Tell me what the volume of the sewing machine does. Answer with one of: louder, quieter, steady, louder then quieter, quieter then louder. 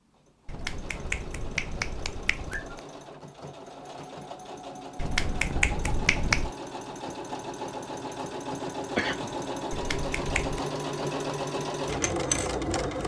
louder.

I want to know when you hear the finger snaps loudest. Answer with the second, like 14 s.
6 s.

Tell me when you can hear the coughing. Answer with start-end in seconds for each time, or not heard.
8.9-9.4.